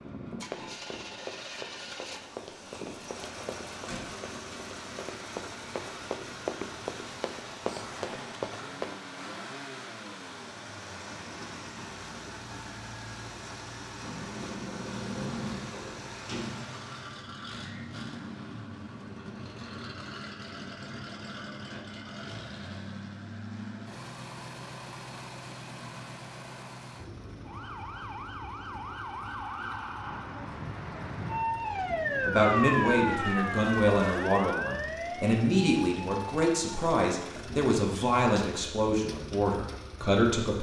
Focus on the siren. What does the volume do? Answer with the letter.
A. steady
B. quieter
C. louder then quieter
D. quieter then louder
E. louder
C.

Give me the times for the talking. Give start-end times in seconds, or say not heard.
32.2-40.5.